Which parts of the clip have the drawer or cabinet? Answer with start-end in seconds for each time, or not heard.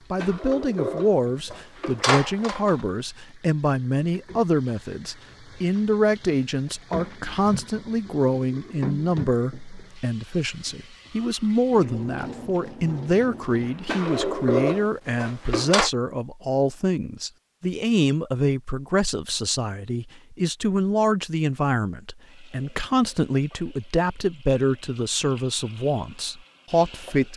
0.1-2.8, 13.8-15.9.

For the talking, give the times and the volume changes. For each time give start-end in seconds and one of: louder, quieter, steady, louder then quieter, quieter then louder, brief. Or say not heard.
0.1-27.3 steady.